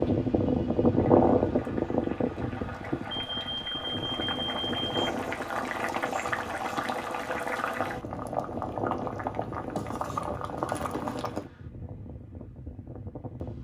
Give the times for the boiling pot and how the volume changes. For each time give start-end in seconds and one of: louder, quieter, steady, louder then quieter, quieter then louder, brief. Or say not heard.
0.0-11.5 louder.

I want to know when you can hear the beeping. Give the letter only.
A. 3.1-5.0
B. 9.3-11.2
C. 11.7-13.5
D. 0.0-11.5
A.